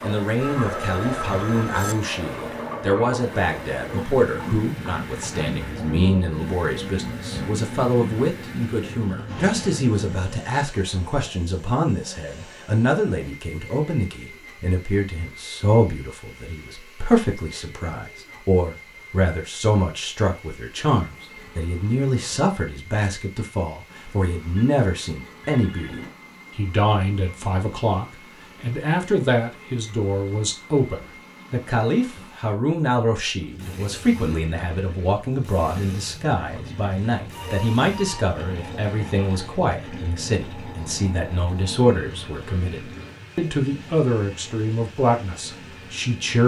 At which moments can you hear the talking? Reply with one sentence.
You can hear the talking from 0.0 to 46.4 s.